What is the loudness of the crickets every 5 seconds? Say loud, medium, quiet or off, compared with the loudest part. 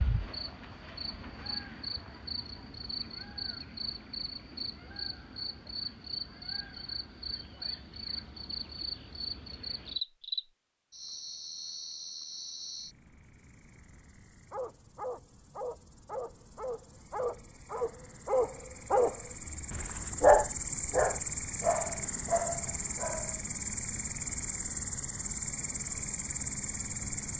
medium, medium, medium, quiet, loud, loud.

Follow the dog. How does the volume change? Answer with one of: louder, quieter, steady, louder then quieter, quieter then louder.
louder then quieter.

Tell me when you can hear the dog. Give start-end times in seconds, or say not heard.
14.5-23.4.